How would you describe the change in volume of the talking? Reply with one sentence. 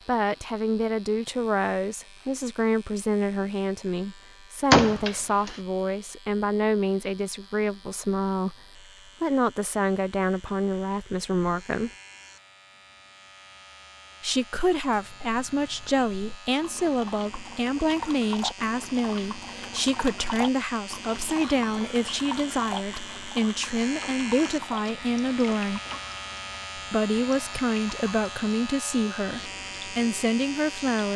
The loudness of the talking stays about the same.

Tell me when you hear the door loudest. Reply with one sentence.
The loudest moment of the door is at 5 seconds.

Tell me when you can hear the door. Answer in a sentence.
You can hear the door from 4.7 to 5.5 s and from 24.0 to 26.0 s.